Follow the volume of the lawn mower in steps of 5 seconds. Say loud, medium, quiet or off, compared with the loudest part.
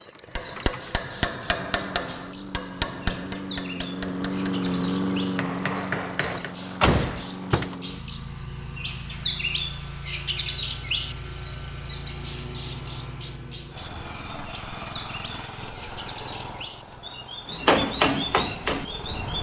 loud, loud, medium, medium.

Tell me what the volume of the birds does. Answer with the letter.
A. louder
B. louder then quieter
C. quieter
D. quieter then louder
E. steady
B.